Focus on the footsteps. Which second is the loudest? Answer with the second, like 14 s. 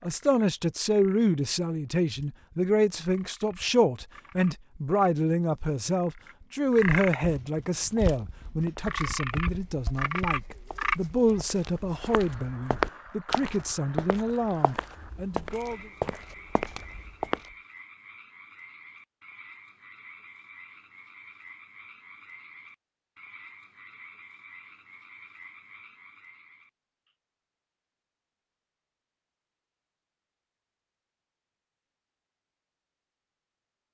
13 s.